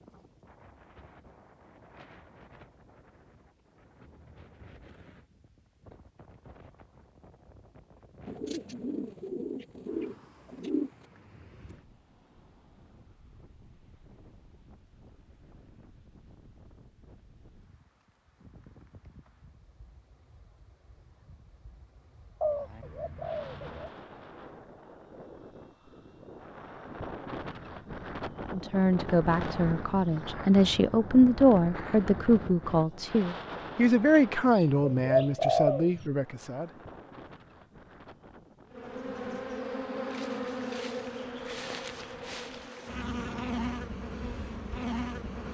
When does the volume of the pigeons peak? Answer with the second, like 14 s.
36 s.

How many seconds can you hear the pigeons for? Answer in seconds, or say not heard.
6 s.